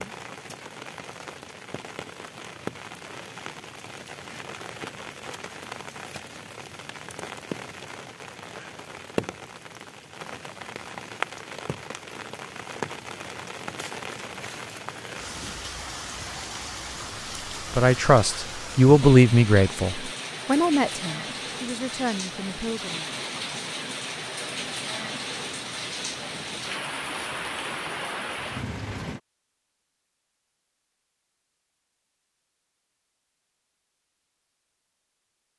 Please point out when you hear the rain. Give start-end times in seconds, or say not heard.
0.0-29.2.